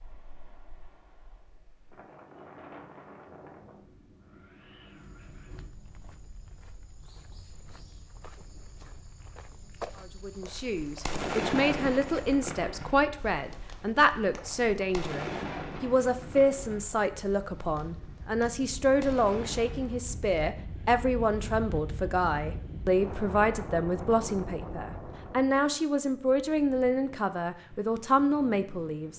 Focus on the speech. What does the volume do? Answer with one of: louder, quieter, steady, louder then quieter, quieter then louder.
steady.